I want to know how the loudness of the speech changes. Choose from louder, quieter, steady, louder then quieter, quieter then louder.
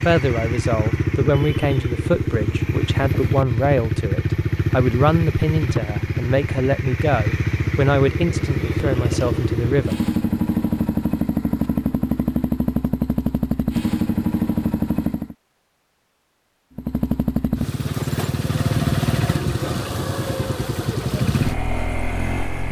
steady.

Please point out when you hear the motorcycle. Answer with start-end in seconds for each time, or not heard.
0.0-15.3, 16.8-22.6.